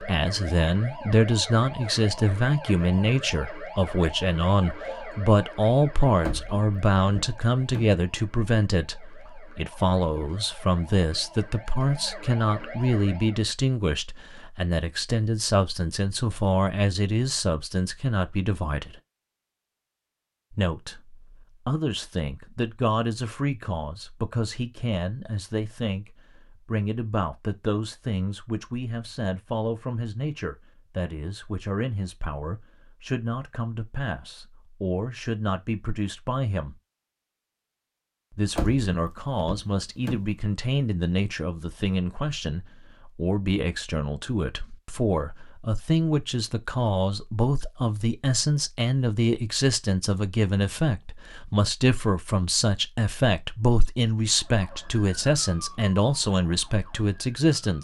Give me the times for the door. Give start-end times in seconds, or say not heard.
6.2-8.0, 38.5-40.3.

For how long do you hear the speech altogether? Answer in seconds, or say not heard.
55 s.